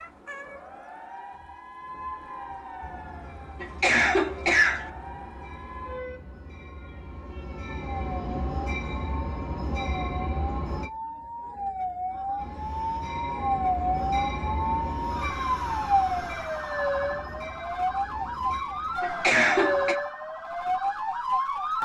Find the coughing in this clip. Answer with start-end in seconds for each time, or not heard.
3.6-4.9, 19.0-19.9.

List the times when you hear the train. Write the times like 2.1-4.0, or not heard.
2.8-10.9, 12.3-19.0.